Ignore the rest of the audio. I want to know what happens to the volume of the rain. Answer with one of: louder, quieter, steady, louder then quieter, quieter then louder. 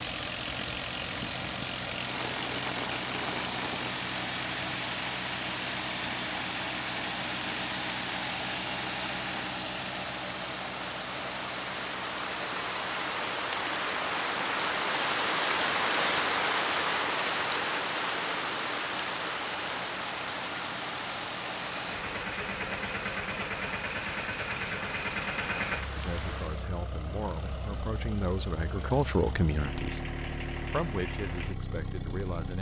louder then quieter.